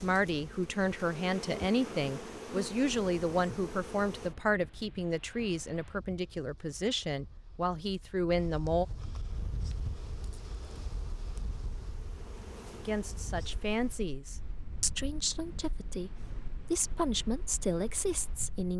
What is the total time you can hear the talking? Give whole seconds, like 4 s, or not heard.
15 s.